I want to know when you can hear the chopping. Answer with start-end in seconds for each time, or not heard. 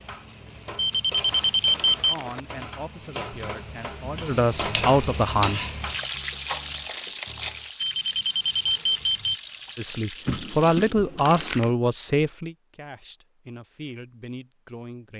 not heard.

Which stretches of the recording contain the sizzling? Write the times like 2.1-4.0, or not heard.
0.0-10.9.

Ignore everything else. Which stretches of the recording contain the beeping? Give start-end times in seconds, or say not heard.
0.8-2.1, 7.8-9.3.